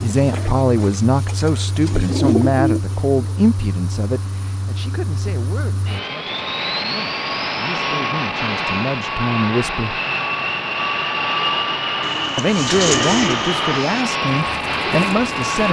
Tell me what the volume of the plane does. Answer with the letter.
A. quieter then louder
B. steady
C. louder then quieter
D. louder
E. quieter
D.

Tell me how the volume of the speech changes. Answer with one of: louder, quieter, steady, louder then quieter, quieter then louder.
quieter then louder.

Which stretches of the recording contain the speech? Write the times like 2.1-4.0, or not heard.
0.0-10.0, 12.3-15.6.